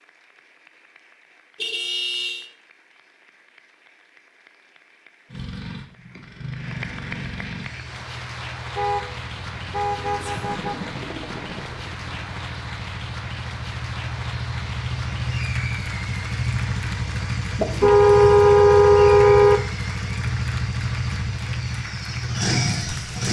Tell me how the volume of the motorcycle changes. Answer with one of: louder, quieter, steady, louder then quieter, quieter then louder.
louder.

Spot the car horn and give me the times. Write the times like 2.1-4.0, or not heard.
1.6-2.5, 8.8-10.8, 17.6-19.6.